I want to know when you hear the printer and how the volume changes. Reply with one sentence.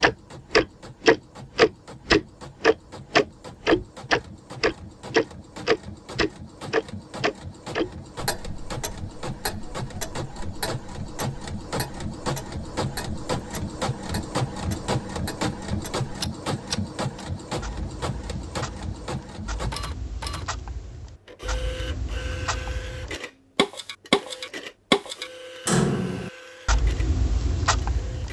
The printer can be heard from 0.0 to 28.2 s, getting louder then quieter.